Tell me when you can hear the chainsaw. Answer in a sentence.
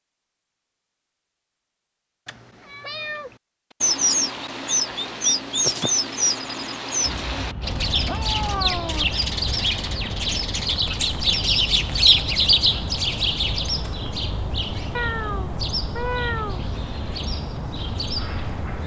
The chainsaw can't be heard in this clip.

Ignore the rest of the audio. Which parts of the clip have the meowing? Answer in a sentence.
The meowing can be heard from 2.2 to 3.4 s, from 7.0 to 9.1 s and from 14.9 to 16.6 s.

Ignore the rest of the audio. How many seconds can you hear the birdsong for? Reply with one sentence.
The birdsong can be heard for 15 seconds in total.